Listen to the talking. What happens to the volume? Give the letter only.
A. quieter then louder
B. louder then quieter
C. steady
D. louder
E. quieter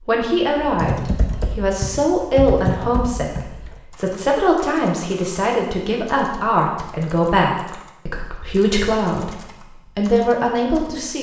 C.